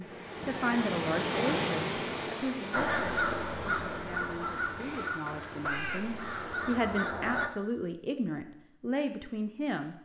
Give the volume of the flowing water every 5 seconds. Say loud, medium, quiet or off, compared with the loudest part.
loud, medium.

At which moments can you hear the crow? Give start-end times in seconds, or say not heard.
2.7-7.5.